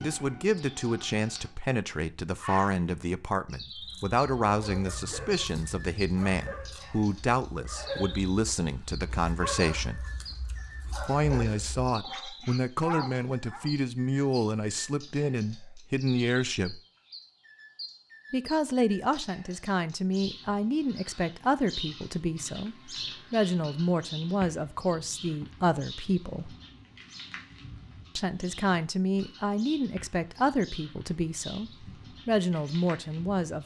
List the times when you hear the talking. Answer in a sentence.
You can hear the talking from 0.0 to 10.1 s, from 11.0 to 16.8 s, from 18.3 to 26.6 s and from 28.1 to 33.6 s.